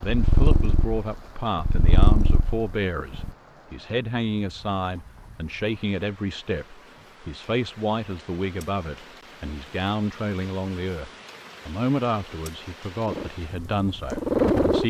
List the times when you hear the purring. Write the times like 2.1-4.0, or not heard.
0.0-3.3, 12.9-14.8.